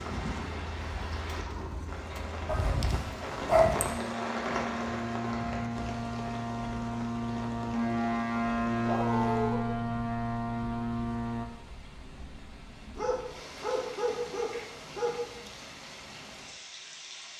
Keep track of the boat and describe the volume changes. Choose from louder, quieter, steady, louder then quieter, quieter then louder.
louder.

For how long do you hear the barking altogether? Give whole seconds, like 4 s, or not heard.
5 s.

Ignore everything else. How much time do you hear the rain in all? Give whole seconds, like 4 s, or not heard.
17 s.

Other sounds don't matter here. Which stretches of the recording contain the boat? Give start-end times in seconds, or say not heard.
0.0-11.4.